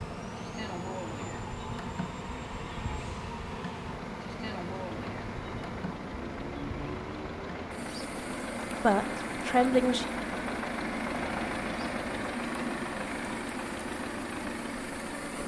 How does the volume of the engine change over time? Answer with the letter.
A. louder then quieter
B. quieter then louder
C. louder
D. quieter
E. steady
C.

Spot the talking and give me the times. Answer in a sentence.
The talking can be heard from 8.8 to 10.1 s.